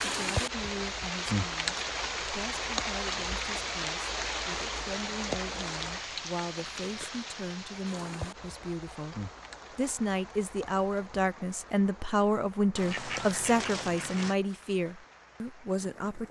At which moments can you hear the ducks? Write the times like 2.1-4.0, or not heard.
12.8-14.3.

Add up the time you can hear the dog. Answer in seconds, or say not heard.
not heard.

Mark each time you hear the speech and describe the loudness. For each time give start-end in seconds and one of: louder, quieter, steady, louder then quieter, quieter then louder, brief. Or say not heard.
0.0-16.2 louder.